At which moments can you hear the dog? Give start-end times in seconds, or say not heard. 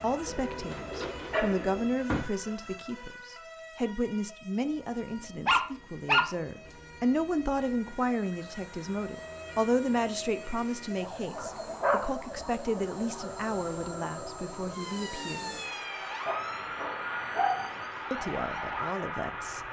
0.7-2.2, 5.5-6.8, 11.3-12.2, 16.2-17.8.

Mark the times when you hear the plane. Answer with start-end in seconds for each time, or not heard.
4.5-19.6.